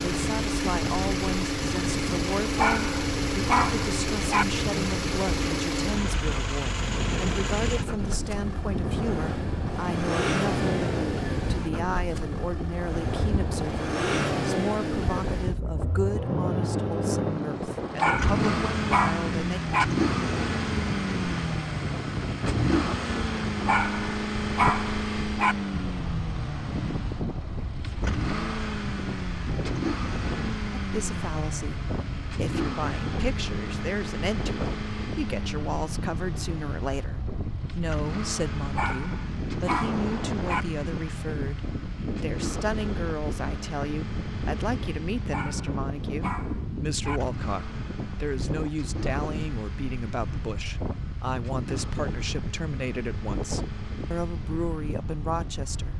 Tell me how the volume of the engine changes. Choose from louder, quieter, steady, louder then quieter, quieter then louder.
quieter.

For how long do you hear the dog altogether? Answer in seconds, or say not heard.
10 s.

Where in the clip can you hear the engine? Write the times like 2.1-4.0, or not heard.
0.0-55.9.